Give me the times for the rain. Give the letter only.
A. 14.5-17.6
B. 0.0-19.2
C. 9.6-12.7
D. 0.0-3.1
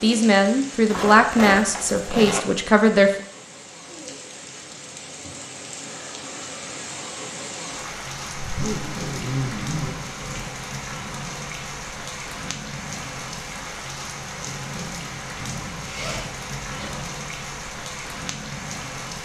B.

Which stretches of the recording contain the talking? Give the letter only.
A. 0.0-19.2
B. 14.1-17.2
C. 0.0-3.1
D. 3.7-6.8
C.